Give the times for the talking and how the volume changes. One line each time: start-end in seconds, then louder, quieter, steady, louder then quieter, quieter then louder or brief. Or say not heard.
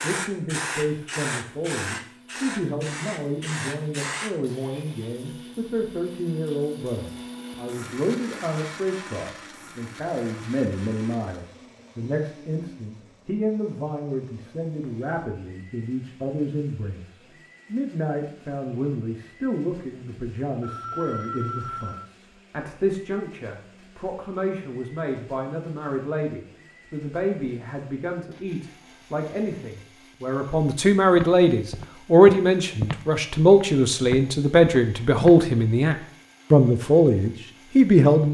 0.0-38.3 louder.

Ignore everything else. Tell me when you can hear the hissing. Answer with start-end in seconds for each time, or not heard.
0.0-4.3.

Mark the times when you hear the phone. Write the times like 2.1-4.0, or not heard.
20.6-22.1.